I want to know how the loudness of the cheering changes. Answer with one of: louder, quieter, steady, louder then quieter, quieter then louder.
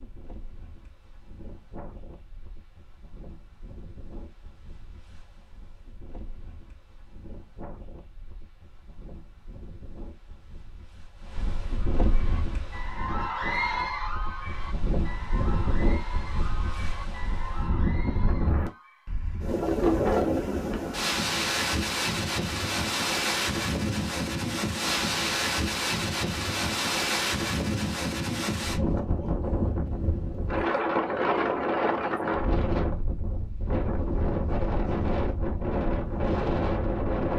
quieter.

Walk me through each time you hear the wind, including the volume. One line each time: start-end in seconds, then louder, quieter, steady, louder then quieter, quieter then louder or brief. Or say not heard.
0.0-37.3 louder.